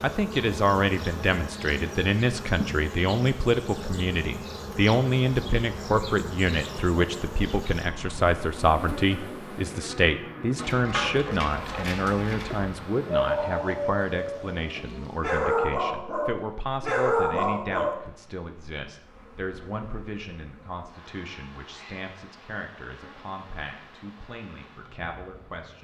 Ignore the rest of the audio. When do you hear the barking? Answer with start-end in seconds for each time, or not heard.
10.6-17.9.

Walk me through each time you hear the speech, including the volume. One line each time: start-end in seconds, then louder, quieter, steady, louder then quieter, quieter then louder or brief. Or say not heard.
0.0-25.7 quieter.